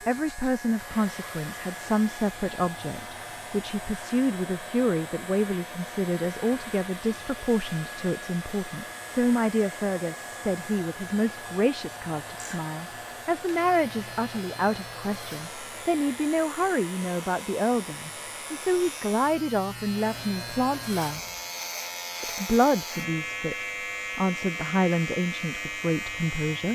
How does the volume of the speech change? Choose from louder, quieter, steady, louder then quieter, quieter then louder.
steady.